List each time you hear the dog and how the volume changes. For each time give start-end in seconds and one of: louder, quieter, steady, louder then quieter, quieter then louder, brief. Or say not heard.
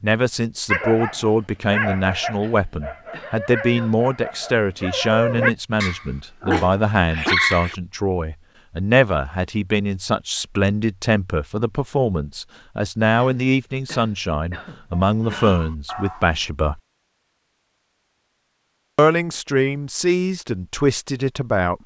0.7-7.8 quieter then louder
15.0-16.5 brief.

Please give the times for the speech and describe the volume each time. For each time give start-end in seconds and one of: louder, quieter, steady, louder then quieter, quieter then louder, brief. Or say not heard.
0.0-16.8 steady
18.9-21.8 brief.